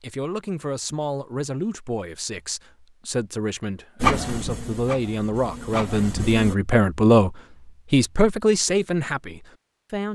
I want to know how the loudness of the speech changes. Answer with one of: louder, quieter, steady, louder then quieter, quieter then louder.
louder.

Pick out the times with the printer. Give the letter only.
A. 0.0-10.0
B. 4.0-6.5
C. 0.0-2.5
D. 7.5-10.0
B.